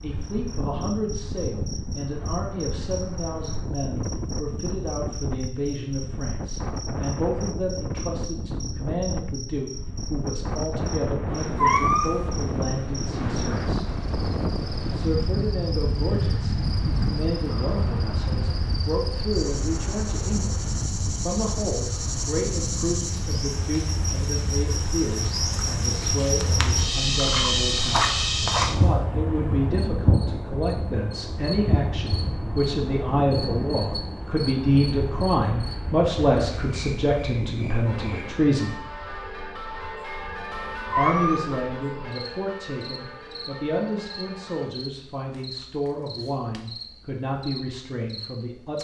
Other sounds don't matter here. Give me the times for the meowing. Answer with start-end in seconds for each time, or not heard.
11.6-12.3, 40.9-41.6.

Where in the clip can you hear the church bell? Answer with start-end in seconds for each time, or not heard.
37.8-44.8.